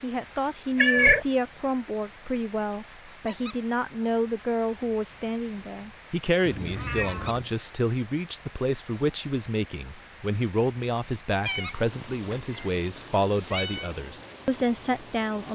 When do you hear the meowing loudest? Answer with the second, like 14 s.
1 s.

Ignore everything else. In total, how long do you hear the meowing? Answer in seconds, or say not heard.
4 s.